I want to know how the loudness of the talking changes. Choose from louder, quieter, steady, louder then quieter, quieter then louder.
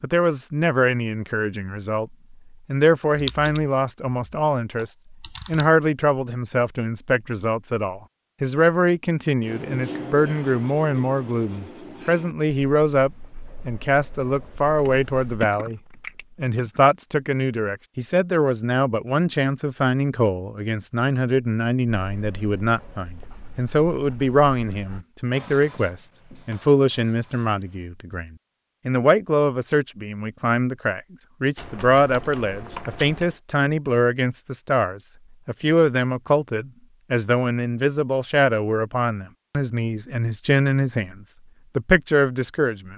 steady.